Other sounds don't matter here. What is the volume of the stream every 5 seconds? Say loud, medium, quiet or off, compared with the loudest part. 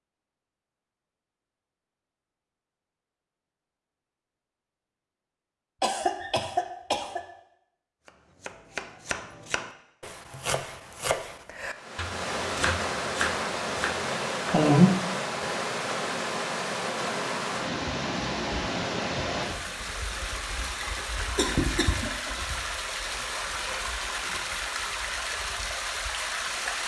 off, off, loud, loud, loud, loud.